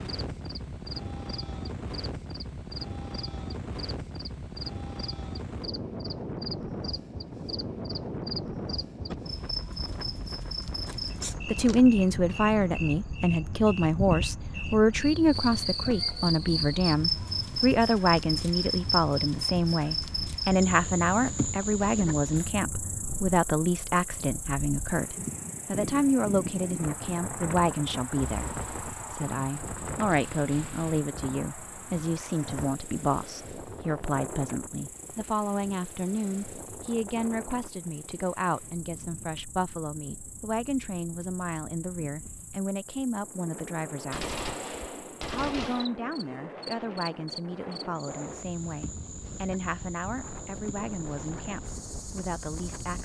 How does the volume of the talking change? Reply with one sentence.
The volume of the talking goes down.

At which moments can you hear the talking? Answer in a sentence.
You can hear the talking from 11.4 to 44.4 s and from 45.2 to 52.9 s.